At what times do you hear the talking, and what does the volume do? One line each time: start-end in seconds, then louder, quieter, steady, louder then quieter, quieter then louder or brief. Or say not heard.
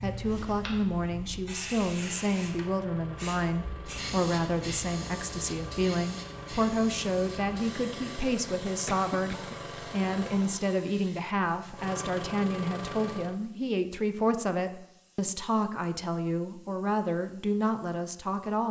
0.0-18.6 steady.